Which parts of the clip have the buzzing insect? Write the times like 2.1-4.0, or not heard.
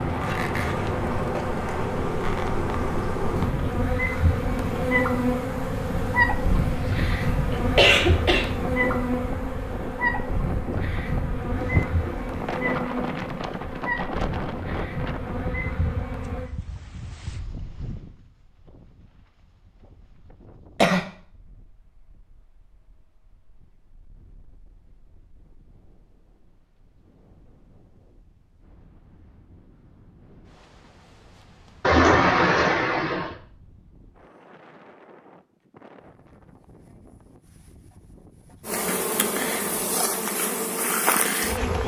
0.0-16.5, 38.6-41.8.